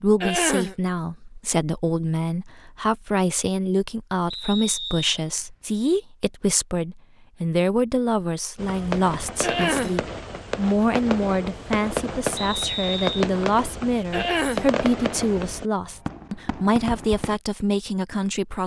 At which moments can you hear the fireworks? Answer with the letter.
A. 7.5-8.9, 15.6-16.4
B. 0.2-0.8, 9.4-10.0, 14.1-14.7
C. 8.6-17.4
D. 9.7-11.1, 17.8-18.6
C.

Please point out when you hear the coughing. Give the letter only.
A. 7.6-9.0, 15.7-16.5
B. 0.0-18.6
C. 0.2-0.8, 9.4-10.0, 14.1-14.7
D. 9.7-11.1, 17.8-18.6
C.